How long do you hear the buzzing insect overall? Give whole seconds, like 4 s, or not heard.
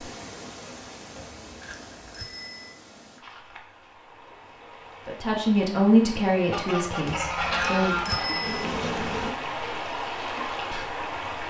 2 s.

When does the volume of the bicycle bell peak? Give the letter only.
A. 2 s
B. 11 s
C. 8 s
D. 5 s
C.